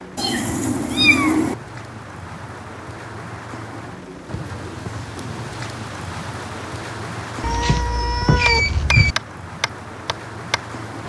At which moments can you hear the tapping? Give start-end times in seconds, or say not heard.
8.4-10.6.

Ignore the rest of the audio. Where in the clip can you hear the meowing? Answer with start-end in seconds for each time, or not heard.
0.1-1.6, 7.4-9.2.